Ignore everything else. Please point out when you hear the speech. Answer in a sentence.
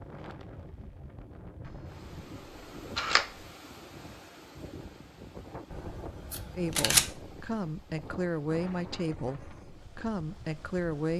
You can hear the speech from 6.5 to 11.1 s.